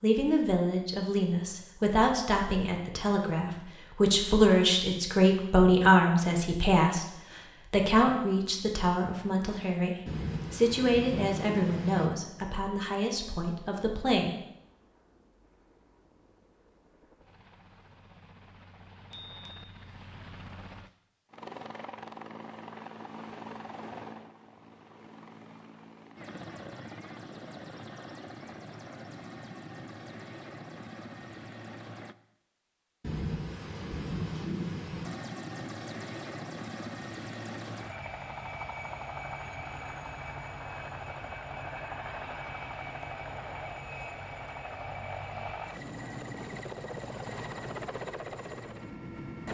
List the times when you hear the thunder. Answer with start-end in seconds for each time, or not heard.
10.1-12.1, 33.0-35.0.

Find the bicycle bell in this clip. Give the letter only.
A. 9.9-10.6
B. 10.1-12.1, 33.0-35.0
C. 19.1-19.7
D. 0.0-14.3
C.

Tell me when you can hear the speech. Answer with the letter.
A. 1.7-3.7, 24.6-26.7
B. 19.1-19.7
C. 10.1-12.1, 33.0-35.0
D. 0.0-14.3
D.